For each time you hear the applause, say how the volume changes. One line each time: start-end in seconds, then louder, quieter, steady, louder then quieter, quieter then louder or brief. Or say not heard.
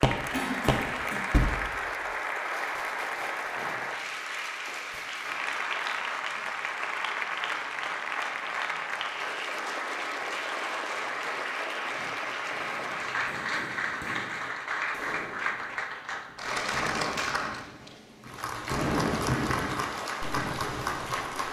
0.0-21.4 steady.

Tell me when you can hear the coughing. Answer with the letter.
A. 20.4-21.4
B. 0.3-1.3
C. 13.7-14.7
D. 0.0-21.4
B.